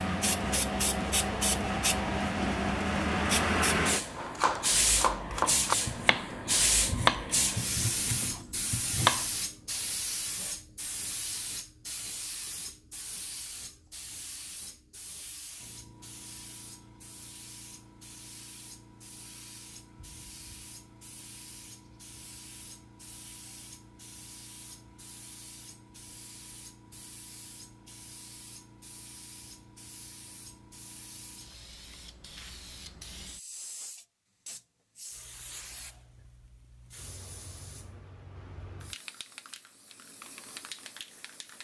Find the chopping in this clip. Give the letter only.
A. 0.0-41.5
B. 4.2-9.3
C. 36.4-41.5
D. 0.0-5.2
B.